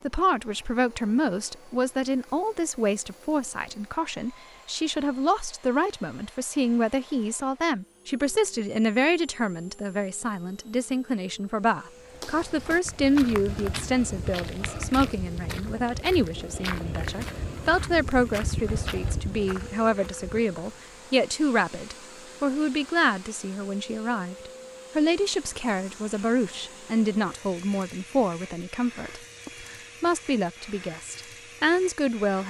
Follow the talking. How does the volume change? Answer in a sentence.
The loudness of the talking stays about the same.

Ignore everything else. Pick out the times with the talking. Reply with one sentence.
You can hear the talking from 0.0 to 32.4 s.